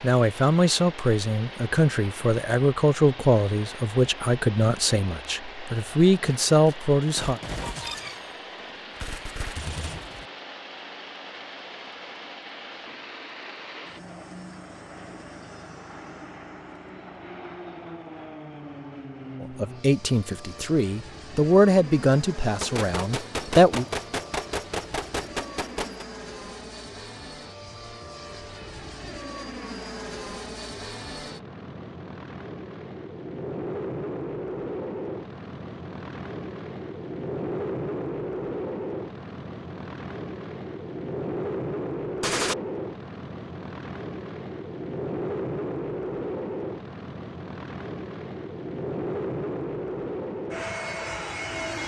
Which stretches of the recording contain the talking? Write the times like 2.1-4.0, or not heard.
0.0-7.4, 19.4-23.9.